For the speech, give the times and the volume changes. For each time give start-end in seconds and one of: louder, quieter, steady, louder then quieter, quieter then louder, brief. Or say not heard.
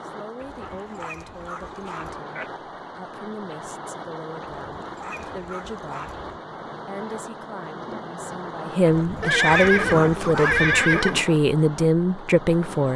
0.1-12.9 louder.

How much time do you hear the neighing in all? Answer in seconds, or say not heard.
4 s.